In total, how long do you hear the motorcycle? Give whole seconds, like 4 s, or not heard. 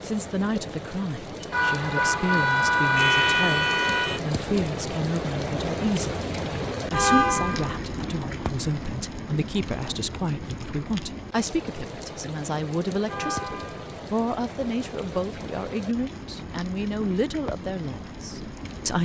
not heard.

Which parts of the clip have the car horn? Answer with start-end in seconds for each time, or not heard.
1.5-4.2, 6.9-7.8, 13.1-13.9.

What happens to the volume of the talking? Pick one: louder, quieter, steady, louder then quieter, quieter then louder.
steady.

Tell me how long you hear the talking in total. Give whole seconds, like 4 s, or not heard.
19 s.